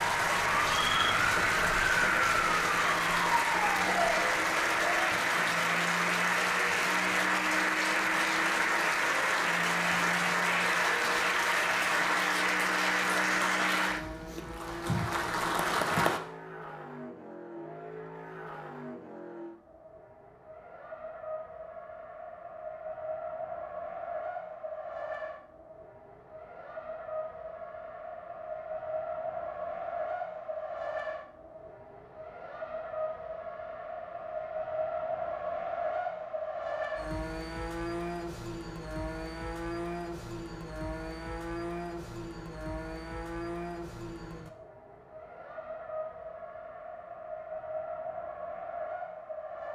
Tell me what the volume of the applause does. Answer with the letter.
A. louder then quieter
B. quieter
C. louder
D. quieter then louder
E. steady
E.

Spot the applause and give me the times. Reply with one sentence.
The applause can be heard from 0.0 to 16.2 s.